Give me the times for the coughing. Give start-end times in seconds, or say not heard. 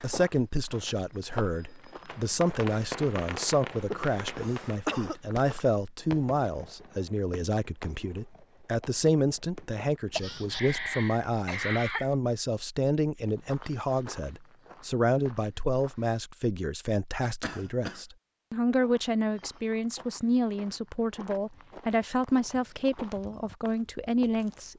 3.9-5.2, 10.2-12.1, 17.4-18.0.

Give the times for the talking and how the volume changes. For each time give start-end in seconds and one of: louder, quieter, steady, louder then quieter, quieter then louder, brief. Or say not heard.
0.0-24.7 steady.